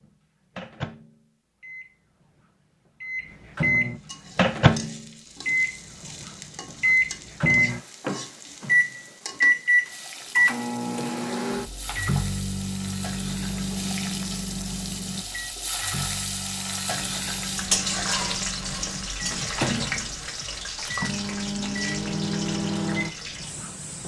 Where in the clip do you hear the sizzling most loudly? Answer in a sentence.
The volume of the sizzling peaks at 18 seconds.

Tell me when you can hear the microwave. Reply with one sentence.
You can hear the microwave from 0.0 to 24.0 s.